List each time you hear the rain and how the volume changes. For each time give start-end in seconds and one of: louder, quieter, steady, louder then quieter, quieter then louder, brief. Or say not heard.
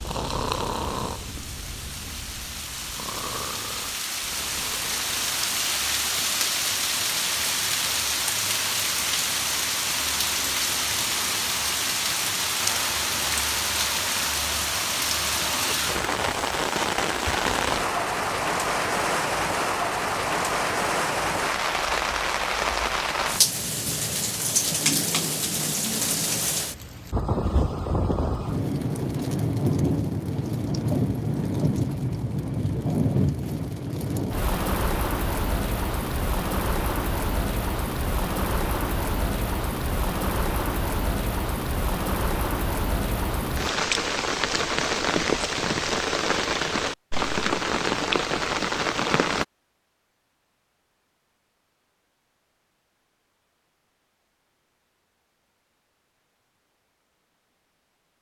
0.0-49.5 steady.